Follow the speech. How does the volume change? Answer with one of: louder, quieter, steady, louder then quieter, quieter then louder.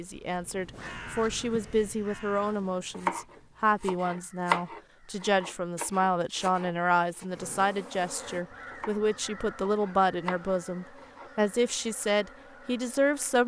steady.